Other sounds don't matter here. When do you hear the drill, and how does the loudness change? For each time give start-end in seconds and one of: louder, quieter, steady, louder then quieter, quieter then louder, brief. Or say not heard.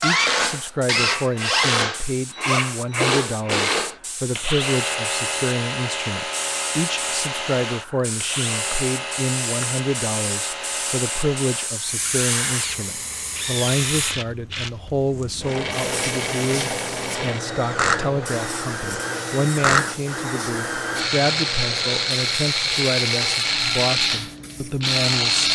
0.0-25.5 quieter then louder.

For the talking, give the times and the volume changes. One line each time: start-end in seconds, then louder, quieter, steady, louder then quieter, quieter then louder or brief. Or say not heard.
0.0-25.5 steady.